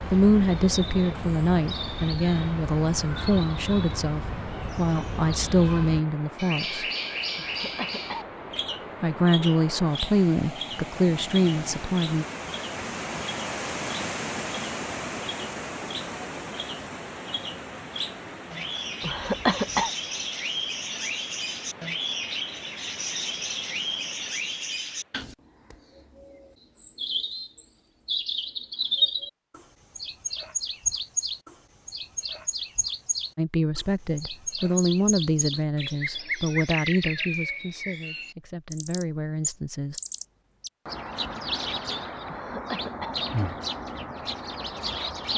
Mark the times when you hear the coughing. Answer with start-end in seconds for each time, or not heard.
7.3-8.8, 19.0-19.9, 42.2-43.2.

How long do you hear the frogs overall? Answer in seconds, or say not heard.
not heard.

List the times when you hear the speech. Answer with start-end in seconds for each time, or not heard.
0.0-6.8, 9.0-12.2, 33.4-40.0.